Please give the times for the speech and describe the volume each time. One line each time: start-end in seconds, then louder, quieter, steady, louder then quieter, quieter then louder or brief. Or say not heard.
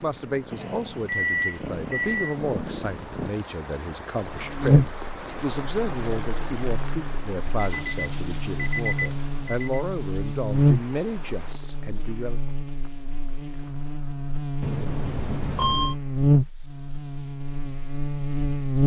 0.0-12.4 steady.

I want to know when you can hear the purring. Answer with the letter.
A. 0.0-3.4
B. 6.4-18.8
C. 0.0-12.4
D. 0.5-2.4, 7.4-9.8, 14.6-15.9
A.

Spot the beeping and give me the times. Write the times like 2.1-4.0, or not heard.
0.5-2.4, 7.4-9.8, 14.6-15.9.